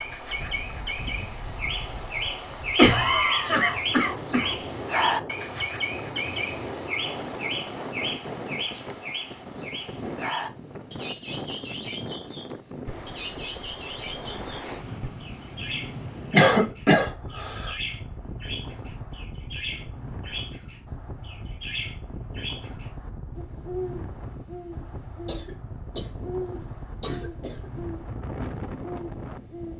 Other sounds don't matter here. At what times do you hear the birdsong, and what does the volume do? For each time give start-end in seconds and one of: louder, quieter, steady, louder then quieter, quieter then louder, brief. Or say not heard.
0.0-29.7 quieter.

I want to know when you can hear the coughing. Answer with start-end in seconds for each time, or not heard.
2.8-4.5, 16.3-17.7, 25.2-26.2, 27.0-27.7.